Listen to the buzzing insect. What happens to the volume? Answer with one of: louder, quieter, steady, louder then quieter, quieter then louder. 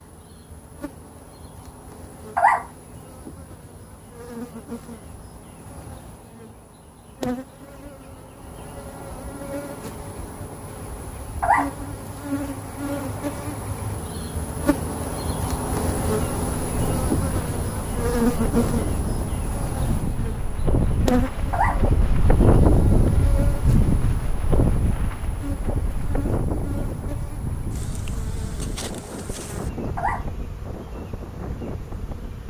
louder then quieter.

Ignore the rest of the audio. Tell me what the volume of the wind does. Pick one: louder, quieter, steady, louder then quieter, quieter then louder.
louder then quieter.